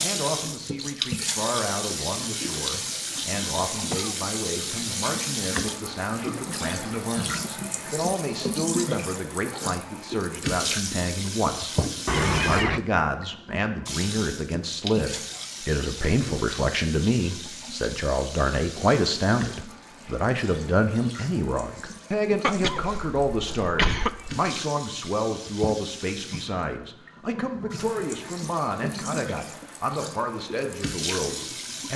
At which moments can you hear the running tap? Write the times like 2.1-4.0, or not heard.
0.0-31.9.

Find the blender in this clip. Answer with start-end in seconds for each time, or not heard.
not heard.